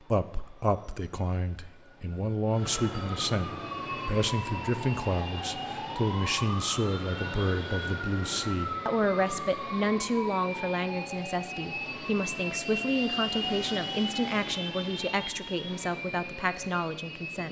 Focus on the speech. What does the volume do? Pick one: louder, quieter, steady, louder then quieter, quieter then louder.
steady.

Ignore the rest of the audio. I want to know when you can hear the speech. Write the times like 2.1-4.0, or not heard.
0.1-17.4.